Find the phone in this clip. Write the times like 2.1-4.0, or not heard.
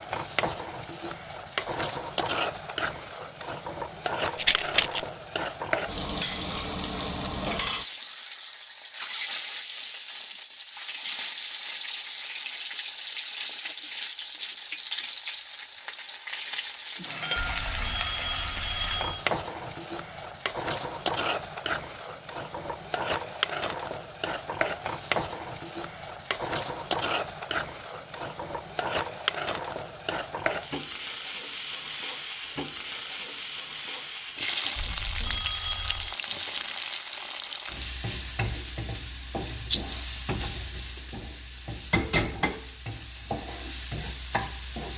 17.4-19.3, 34.8-36.1.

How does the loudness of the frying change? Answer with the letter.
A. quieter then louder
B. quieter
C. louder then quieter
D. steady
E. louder
D.